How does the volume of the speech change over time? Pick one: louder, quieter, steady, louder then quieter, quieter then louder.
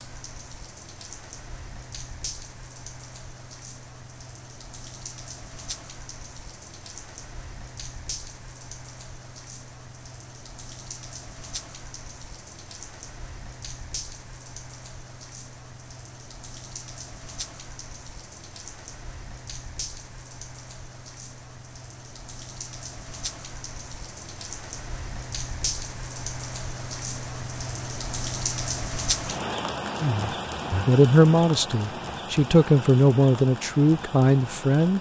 steady.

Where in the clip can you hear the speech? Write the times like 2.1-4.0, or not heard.
30.0-34.9.